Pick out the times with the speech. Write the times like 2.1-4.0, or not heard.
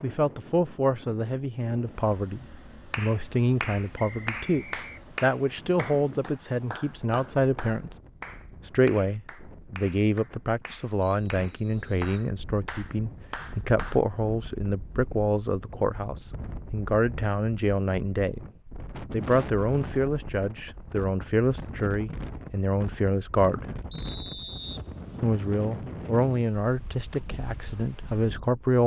0.0-7.9, 8.7-18.4, 19.1-23.6, 25.2-28.8.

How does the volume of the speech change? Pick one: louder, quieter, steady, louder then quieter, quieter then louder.
steady.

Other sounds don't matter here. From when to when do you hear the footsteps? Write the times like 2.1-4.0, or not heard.
not heard.